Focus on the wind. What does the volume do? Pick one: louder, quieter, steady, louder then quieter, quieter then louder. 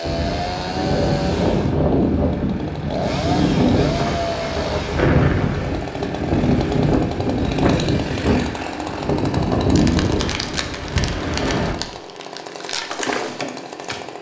steady.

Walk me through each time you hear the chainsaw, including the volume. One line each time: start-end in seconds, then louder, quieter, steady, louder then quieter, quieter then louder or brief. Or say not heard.
0.0-14.1 steady.